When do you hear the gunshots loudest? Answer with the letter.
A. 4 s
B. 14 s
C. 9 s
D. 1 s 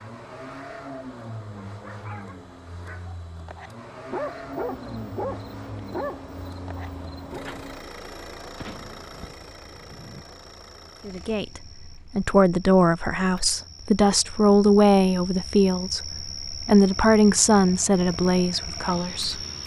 C.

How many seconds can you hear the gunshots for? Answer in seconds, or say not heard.
2 s.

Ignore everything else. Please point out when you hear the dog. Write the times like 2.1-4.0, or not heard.
1.6-7.5.